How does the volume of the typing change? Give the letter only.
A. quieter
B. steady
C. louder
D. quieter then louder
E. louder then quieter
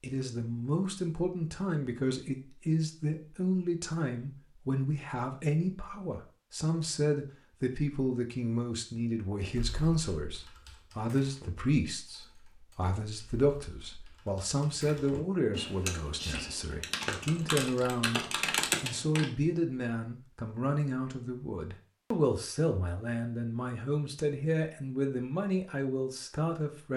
D.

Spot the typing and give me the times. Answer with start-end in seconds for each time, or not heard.
9.5-19.3.